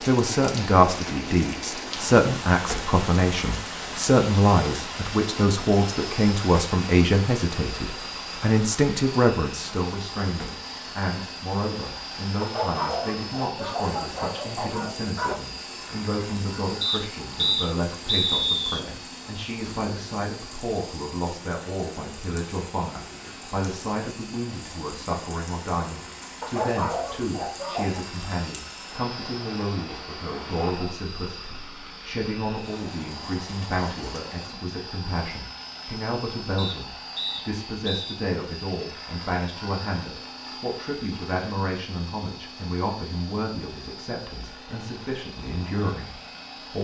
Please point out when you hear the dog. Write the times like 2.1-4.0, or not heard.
12.4-15.4, 26.4-28.1.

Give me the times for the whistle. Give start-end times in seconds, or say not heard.
16.8-18.8, 36.5-38.2.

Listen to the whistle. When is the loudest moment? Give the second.
18 s.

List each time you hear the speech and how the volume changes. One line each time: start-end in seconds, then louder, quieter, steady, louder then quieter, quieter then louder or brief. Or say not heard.
0.1-46.7 quieter.